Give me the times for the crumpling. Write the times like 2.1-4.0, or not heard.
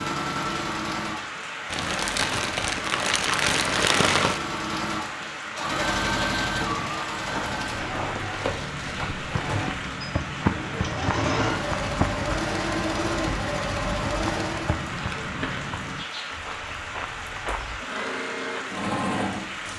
1.7-4.4, 8.3-9.7, 14.9-15.8.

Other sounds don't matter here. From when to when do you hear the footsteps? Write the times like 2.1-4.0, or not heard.
7.2-17.8.